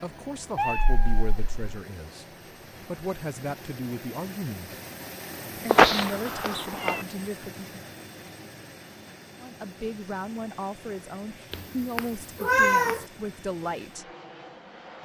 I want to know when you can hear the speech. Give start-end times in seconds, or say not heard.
0.0-4.8, 5.5-7.7, 9.4-14.1.